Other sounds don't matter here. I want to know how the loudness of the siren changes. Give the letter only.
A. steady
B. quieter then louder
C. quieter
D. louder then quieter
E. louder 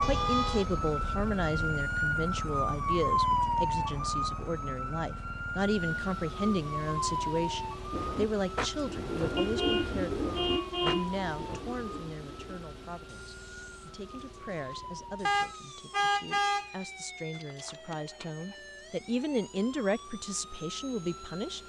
C.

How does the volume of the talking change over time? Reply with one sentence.
The loudness of the talking goes down, then up.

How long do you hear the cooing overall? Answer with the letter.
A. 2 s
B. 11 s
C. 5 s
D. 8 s
B.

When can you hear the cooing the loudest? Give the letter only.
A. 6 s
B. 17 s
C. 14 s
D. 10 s
D.